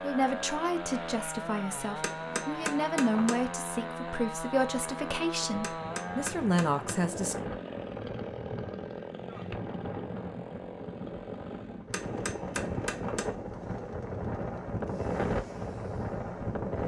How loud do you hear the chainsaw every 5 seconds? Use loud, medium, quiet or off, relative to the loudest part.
loud, loud, medium, quiet.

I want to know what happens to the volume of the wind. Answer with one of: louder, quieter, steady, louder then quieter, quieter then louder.
louder.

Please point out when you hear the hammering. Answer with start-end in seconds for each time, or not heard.
2.0-3.5, 5.6-7.0, 11.9-13.3.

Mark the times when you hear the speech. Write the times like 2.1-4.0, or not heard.
0.0-7.3.